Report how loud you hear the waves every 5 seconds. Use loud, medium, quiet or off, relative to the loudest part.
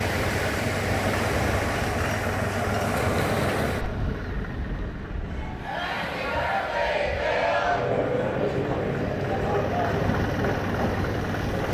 loud, medium, loud.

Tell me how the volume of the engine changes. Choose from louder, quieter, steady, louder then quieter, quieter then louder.
quieter then louder.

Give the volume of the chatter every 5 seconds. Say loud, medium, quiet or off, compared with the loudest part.
off, loud, medium.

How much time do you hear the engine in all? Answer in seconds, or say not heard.
12 s.